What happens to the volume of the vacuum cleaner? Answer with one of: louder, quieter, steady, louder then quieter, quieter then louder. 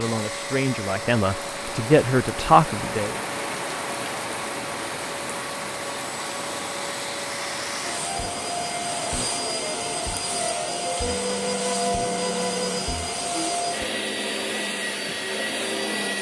louder.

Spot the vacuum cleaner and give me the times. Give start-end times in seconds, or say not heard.
0.0-16.1.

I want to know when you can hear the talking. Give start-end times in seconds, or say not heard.
0.0-3.1.